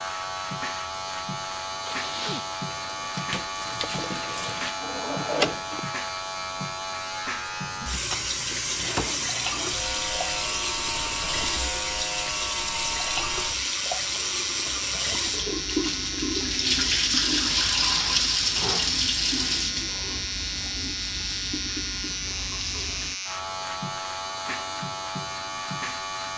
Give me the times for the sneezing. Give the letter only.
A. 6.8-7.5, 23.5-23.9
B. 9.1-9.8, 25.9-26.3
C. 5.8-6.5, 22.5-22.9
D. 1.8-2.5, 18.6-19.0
D.